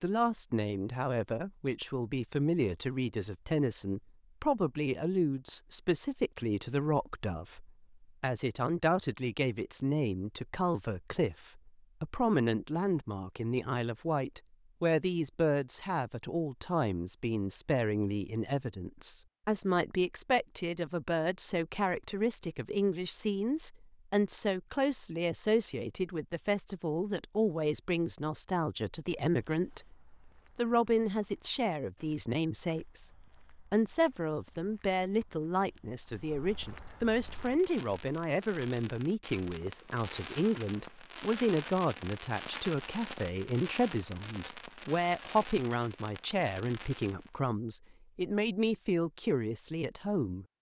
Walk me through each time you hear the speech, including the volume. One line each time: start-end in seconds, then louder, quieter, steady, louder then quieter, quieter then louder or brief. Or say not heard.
0.0-29.9 steady
30.6-50.5 steady.